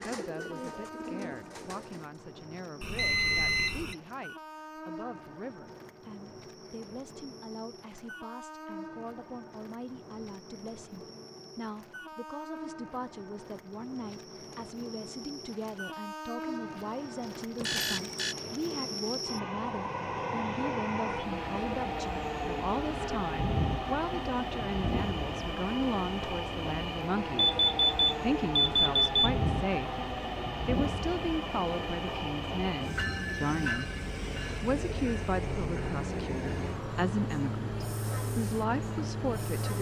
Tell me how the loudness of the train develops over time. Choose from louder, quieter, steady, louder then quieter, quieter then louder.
louder.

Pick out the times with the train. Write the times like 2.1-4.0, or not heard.
0.1-39.7.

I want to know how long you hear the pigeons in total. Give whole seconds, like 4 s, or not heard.
2 s.